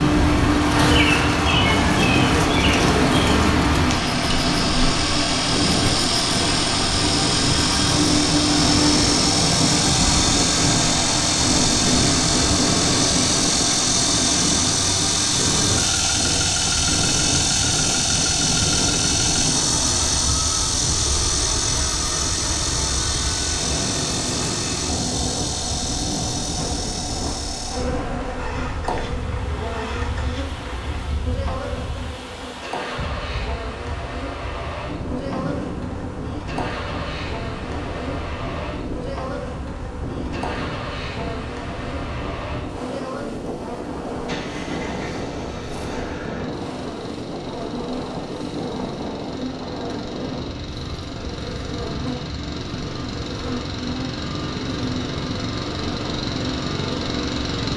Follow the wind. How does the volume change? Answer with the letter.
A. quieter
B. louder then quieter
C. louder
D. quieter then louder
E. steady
A.